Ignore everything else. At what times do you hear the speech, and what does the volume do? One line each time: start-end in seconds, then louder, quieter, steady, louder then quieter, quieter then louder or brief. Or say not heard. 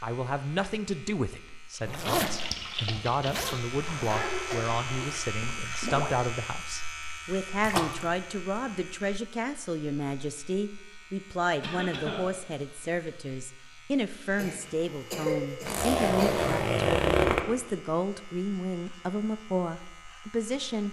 0.0-20.8 steady.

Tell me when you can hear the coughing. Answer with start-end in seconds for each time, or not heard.
4.0-4.8, 11.6-12.3, 14.3-16.3.